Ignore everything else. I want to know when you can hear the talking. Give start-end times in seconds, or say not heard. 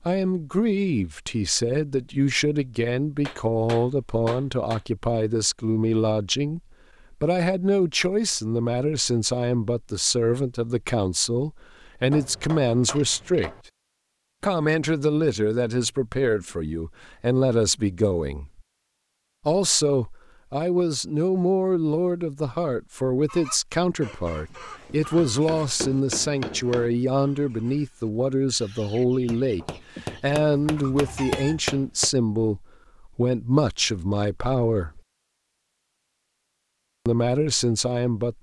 0.0-13.5, 14.4-18.6, 19.4-35.0, 37.0-38.3.